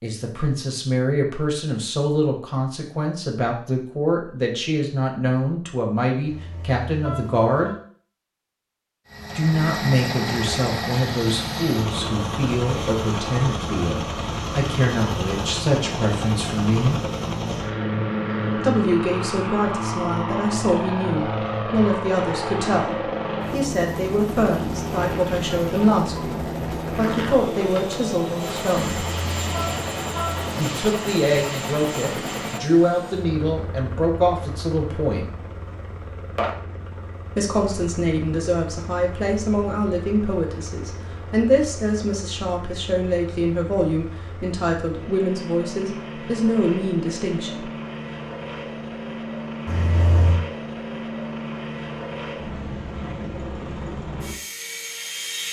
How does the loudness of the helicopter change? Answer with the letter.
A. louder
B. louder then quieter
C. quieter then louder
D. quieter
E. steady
C.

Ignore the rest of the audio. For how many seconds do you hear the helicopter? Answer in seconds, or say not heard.
46 s.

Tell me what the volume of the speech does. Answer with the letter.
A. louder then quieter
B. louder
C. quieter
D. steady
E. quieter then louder
D.